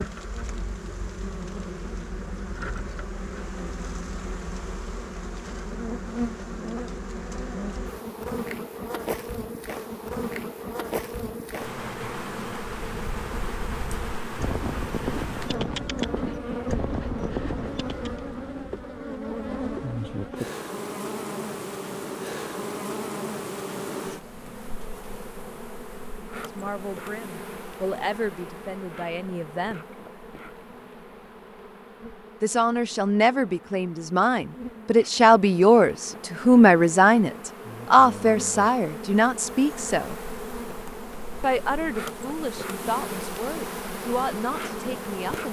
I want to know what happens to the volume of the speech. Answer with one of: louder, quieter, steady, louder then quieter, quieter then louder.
louder then quieter.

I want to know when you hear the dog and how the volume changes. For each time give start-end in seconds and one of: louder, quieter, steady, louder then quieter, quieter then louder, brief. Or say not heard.
not heard.